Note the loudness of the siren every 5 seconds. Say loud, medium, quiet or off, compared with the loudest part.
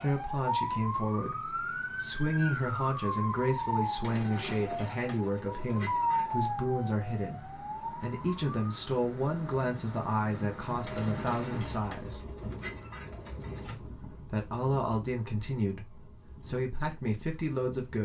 loud, loud, off, off.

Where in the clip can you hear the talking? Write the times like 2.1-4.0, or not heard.
0.0-12.2, 13.8-18.0.